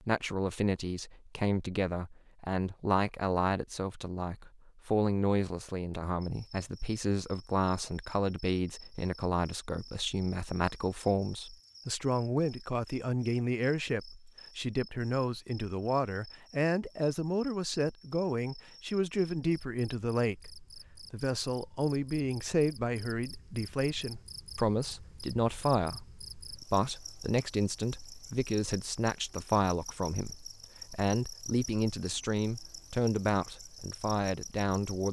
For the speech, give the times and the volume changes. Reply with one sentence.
The speech can be heard from 0.1 to 35.0 s, at a steady volume.